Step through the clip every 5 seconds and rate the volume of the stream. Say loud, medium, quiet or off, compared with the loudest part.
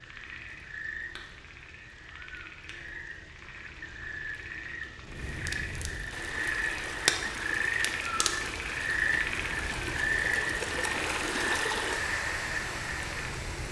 off, medium, loud.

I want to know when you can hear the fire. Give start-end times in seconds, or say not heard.
0.0-13.6.